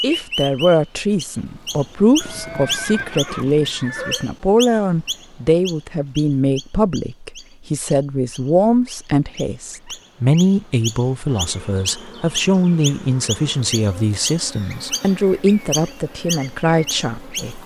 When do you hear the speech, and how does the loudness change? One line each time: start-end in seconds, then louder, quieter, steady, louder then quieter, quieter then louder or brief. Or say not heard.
0.0-17.6 steady.